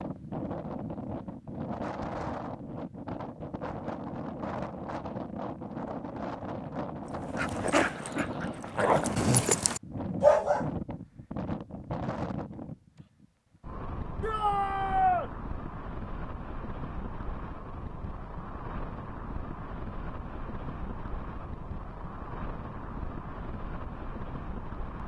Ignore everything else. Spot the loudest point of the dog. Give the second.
10 s.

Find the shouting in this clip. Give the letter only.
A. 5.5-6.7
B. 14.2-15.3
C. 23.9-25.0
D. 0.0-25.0
B.